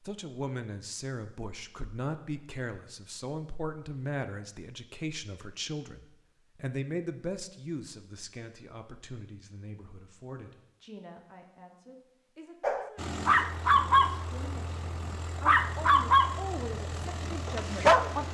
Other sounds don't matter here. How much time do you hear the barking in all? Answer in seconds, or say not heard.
4 s.